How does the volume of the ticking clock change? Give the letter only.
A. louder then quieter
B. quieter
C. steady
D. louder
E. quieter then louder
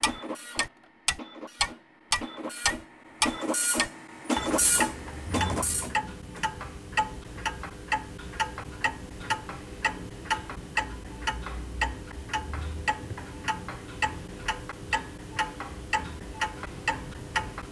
B.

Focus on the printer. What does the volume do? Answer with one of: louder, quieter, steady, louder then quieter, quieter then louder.
louder.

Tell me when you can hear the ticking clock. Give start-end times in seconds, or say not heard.
0.0-17.6.